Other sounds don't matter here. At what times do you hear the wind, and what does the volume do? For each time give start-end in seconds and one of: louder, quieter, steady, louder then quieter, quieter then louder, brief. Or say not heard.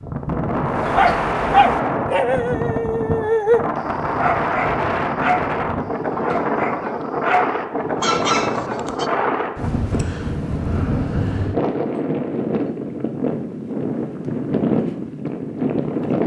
0.0-16.2 steady.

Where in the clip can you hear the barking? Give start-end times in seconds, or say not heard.
0.8-5.5, 6.2-9.1.